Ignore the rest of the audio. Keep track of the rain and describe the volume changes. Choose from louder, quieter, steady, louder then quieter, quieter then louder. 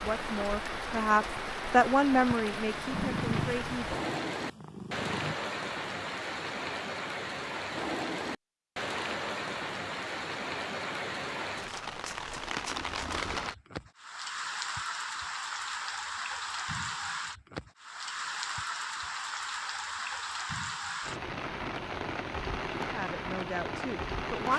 steady.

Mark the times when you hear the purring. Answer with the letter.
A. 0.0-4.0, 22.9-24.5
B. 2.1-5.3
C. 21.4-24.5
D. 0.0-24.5
B.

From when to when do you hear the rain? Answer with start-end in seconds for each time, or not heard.
0.0-24.5.